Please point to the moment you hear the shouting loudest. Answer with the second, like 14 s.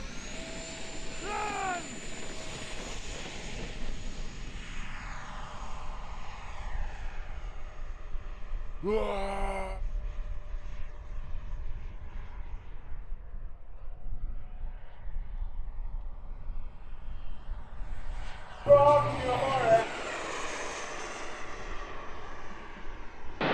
19 s.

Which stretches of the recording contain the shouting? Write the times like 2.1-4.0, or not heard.
1.2-2.0, 8.8-9.8, 18.6-19.9.